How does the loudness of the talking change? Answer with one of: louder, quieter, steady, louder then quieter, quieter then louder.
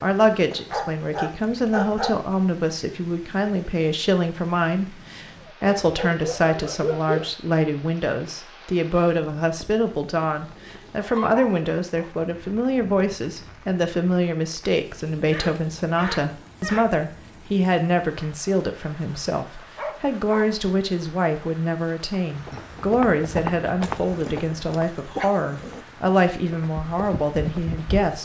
steady.